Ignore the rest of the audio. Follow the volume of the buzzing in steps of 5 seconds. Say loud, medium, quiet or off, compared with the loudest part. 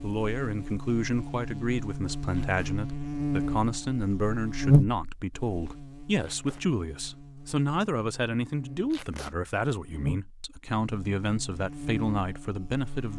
loud, quiet, medium.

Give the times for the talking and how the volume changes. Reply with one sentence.
The talking can be heard from 0.0 to 13.1 s, at a steady volume.